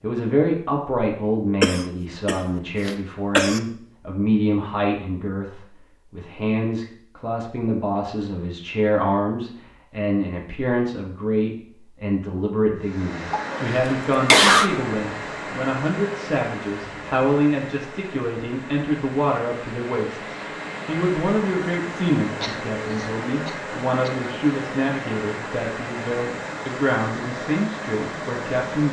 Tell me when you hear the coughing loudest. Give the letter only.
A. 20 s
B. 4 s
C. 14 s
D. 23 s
C.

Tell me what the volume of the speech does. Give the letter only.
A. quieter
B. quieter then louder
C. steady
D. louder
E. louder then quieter
C.